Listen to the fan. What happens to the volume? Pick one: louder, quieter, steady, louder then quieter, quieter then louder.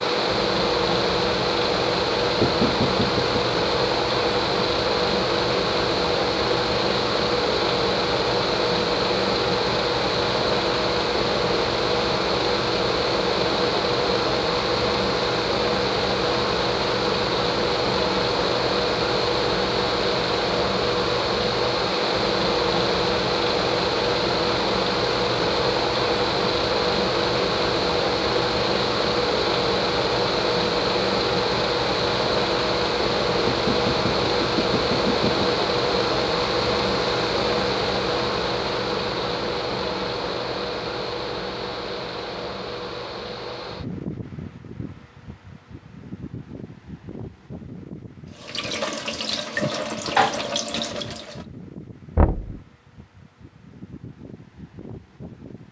quieter.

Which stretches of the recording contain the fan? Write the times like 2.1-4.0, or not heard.
0.0-55.6.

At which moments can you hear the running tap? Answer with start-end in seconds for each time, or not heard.
48.4-51.5.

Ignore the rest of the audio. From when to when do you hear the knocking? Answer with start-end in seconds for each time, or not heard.
2.4-3.4, 33.5-35.5, 52.1-52.6.